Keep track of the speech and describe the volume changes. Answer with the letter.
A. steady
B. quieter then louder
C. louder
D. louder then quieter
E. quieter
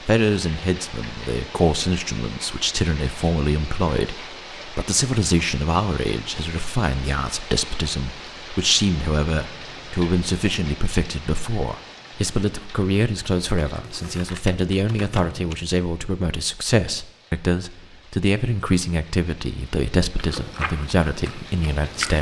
A.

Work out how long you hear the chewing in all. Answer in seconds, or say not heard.
2 s.